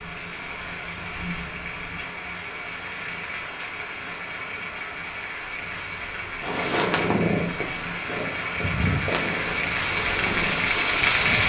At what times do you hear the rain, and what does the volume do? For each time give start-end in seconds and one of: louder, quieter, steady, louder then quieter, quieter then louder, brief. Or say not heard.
0.0-11.4 louder.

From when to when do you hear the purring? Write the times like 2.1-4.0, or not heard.
6.4-11.4.